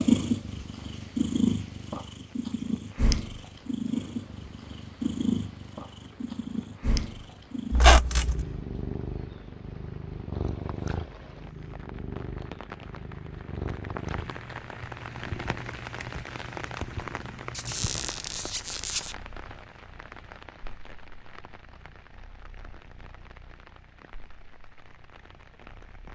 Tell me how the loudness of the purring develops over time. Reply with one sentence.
The loudness of the purring goes down.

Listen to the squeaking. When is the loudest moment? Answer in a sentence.
The loudest moment of the squeaking is at 8 seconds.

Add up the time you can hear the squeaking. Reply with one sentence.
You can hear the squeaking for 2 seconds altogether.